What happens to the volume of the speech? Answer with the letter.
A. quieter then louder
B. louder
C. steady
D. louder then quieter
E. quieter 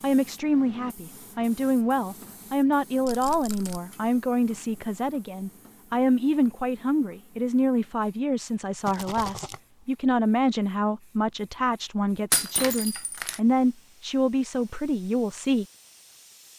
C.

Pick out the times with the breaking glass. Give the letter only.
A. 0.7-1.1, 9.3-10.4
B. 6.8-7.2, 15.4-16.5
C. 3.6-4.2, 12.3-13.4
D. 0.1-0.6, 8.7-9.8
C.